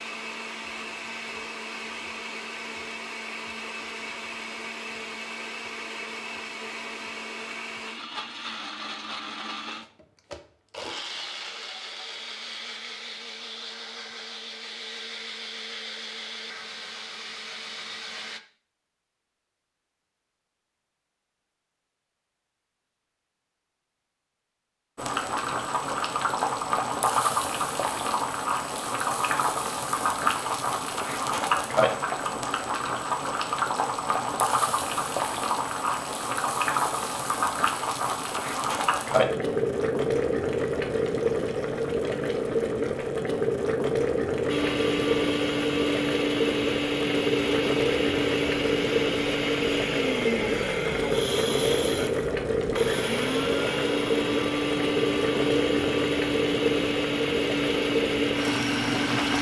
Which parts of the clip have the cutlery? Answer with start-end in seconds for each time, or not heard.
not heard.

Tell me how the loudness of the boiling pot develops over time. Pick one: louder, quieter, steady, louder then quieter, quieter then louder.
steady.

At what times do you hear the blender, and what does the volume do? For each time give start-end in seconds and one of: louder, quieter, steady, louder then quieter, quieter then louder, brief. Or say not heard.
0.0-18.4 steady
44.5-59.3 steady.